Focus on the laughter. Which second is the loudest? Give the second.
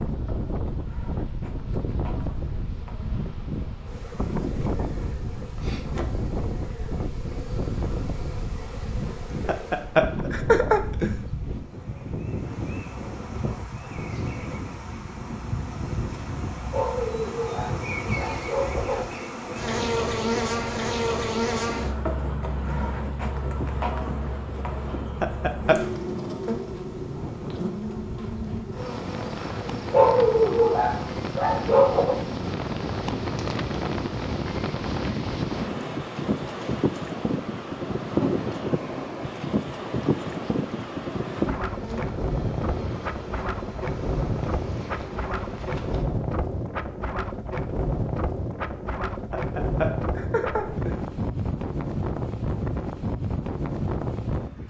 11 s.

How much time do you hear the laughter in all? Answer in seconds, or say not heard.
4 s.